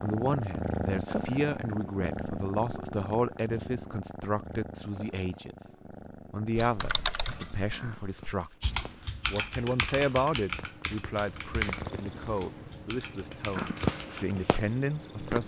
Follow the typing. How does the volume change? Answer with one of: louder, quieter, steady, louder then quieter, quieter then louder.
quieter.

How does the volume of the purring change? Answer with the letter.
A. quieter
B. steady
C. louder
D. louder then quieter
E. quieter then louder
E.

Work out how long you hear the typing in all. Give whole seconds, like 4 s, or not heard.
8 s.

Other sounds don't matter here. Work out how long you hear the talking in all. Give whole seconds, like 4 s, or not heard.
15 s.